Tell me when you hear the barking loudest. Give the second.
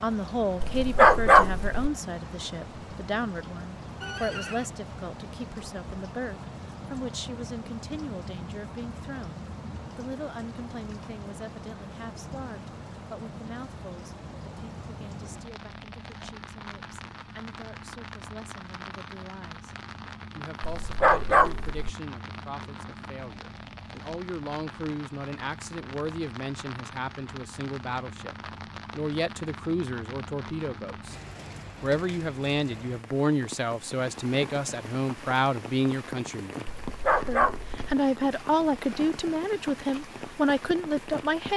1 s.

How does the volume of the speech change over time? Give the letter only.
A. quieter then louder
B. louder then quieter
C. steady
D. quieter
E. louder
A.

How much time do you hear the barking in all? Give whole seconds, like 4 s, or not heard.
4 s.